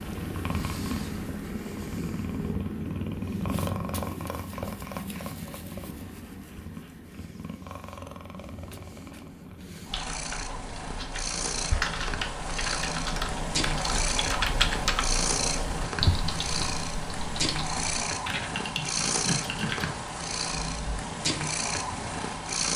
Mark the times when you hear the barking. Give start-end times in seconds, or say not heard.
not heard.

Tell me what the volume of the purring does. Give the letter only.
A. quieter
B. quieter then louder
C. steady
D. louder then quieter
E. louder
B.